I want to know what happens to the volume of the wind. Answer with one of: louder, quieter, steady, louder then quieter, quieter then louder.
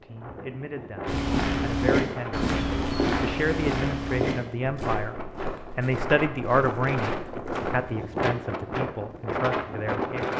louder.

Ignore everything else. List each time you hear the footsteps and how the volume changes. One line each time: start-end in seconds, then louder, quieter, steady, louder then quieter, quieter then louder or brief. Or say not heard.
1.1-7.8 quieter.